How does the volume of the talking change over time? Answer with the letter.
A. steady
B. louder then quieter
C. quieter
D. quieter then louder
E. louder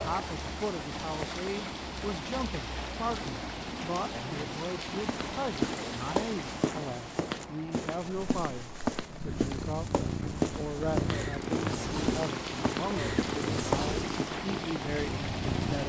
A.